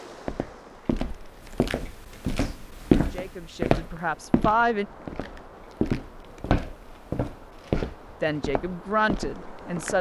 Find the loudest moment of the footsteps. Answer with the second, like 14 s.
3 s.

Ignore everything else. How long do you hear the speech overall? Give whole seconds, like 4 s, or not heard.
4 s.